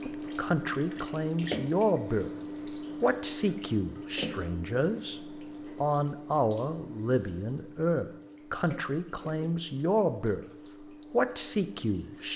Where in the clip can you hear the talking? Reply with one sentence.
You can hear the talking from 0.0 to 2.3 s, from 3.0 to 5.2 s, from 5.8 to 10.4 s and from 11.1 to 12.3 s.